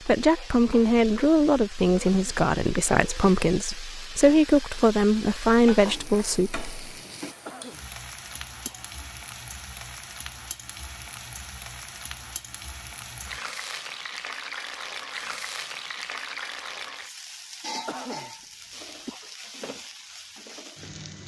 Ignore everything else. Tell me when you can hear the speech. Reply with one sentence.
The speech can be heard from 0.1 to 6.7 s.